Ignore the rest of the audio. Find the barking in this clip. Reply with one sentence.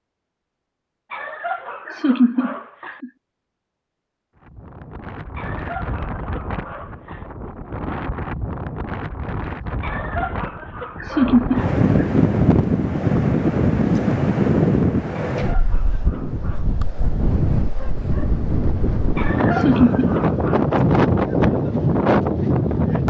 You can hear the barking from 1.1 to 3.0 s, from 5.3 to 7.2 s, from 9.8 to 11.8 s, from 15.3 to 16.7 s and from 19.1 to 20.6 s.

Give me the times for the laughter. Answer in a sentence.
The laughter can be heard from 1.9 to 3.1 s, from 11.0 to 12.1 s and from 19.4 to 20.1 s.